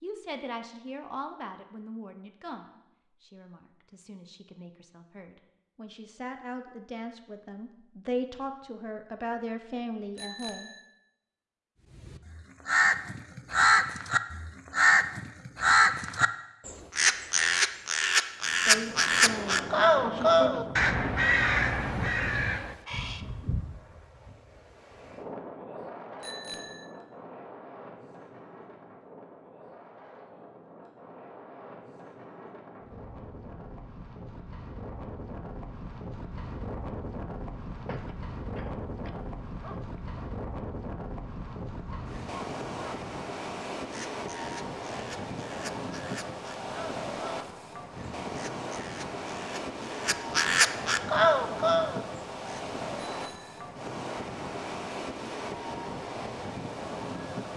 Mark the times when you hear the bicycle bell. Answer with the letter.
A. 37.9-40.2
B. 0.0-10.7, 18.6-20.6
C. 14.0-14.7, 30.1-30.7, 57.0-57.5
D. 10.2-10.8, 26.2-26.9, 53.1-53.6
D.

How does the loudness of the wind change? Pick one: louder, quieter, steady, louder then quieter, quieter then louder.
quieter then louder.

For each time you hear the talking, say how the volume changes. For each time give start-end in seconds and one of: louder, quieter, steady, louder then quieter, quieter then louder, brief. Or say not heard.
0.0-10.7 quieter then louder
18.6-20.6 brief.